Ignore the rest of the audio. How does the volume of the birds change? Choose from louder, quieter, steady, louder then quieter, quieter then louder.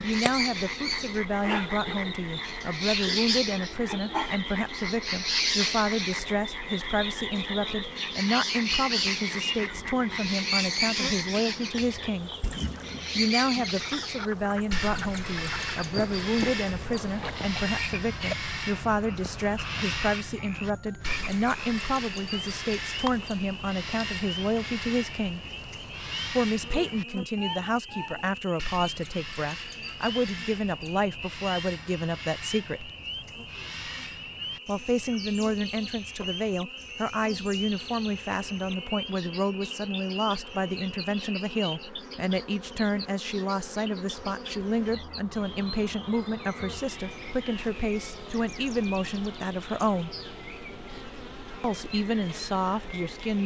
quieter.